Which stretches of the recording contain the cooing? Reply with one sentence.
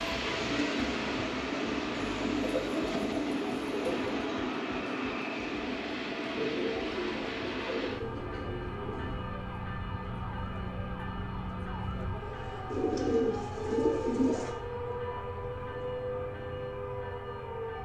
The cooing can be heard from 1.9 to 4.2 s, from 6.3 to 9.2 s and from 12.7 to 14.5 s.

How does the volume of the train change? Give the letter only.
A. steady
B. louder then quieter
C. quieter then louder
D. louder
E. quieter
E.